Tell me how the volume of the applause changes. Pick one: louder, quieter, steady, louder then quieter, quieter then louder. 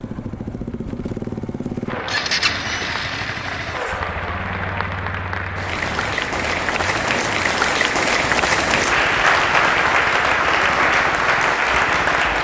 louder.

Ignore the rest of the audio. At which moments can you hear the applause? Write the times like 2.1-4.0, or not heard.
1.9-12.3.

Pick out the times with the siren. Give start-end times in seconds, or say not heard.
not heard.